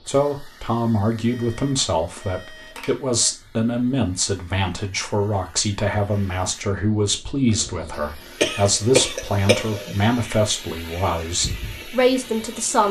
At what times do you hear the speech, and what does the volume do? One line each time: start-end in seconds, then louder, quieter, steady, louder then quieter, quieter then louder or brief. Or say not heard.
0.1-12.8 steady.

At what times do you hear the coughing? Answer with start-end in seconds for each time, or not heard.
8.4-9.9.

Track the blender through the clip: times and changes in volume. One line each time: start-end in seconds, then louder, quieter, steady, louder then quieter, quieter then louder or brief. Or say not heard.
not heard.